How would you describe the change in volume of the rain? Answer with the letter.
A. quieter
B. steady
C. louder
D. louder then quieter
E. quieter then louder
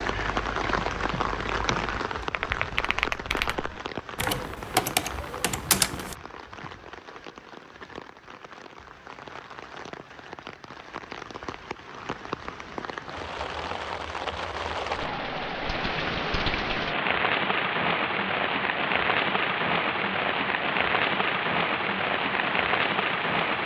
E.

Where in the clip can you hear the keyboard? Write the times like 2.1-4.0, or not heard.
0.0-6.2.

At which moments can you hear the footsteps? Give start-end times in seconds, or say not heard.
not heard.